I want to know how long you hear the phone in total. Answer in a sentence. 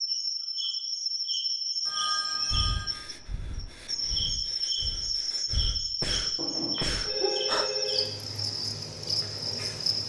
The phone can be heard for 3 seconds in total.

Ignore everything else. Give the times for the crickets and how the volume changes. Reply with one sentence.
You can hear the crickets from 0.0 to 10.0 s, at a steady volume.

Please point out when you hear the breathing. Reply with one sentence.
You can hear the breathing from 2.5 to 7.7 s.